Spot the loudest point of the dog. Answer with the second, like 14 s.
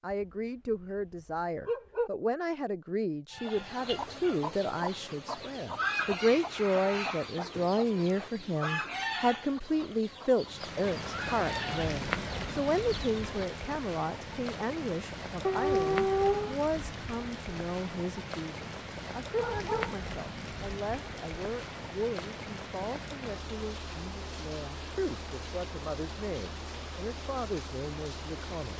16 s.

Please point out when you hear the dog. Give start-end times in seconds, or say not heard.
0.1-0.8, 1.6-2.1, 15.4-16.6, 19.4-19.9.